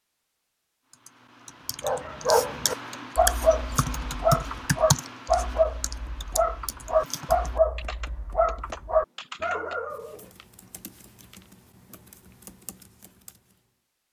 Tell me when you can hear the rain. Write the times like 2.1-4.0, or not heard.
not heard.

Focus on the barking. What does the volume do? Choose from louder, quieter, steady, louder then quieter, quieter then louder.
steady.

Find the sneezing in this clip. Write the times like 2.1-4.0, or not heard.
not heard.